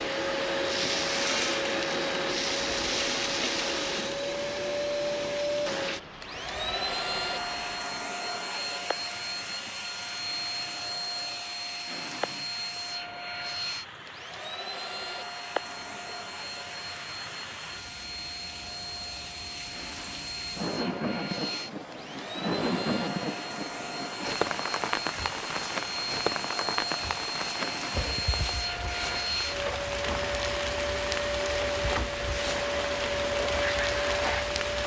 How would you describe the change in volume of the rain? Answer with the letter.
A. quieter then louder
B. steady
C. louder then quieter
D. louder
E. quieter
D.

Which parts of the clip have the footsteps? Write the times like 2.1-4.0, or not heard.
not heard.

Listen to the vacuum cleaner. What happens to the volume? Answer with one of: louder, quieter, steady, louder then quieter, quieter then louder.
quieter then louder.